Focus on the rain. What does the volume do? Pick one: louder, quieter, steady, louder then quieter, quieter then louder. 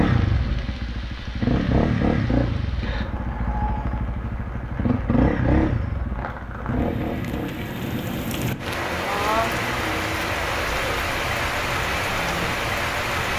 louder.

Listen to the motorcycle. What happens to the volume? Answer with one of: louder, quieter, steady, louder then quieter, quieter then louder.
quieter.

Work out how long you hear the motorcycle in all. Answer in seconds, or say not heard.
13 s.